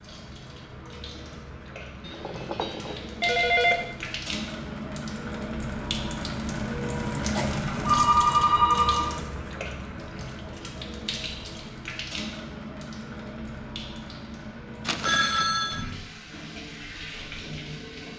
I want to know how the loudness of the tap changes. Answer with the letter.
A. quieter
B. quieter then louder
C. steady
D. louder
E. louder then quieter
E.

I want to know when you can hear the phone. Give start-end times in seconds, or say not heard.
2.0-4.0, 7.3-9.2, 14.8-15.8.